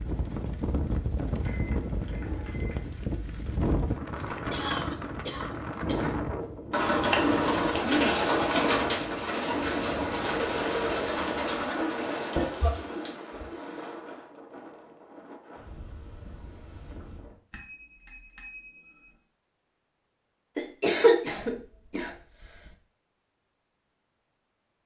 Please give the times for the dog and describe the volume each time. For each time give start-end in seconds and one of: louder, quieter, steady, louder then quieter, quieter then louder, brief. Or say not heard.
not heard.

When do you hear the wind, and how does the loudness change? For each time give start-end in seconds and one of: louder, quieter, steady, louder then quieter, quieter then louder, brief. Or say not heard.
0.0-17.4 quieter.